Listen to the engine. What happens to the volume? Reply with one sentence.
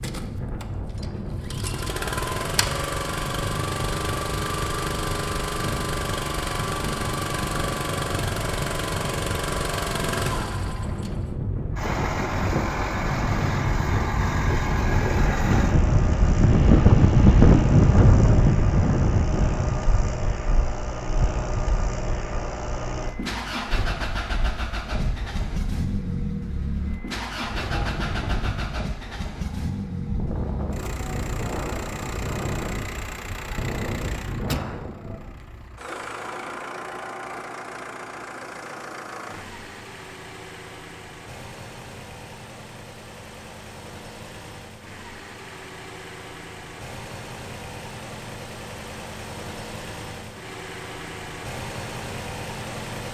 The volume of the engine goes down.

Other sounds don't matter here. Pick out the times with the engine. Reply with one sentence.
The engine can be heard from 0.0 to 53.0 s.